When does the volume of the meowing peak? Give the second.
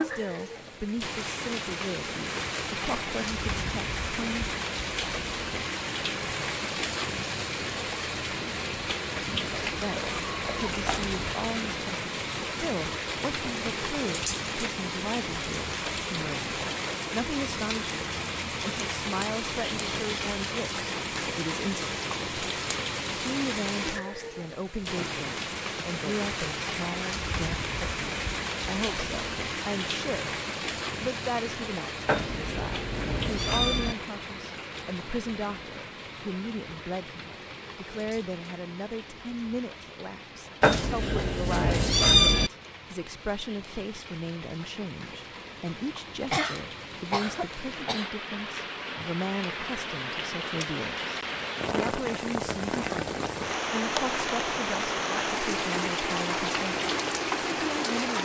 42 s.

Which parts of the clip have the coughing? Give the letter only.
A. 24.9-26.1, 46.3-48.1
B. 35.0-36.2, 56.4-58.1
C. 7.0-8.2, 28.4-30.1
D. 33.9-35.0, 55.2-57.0
A.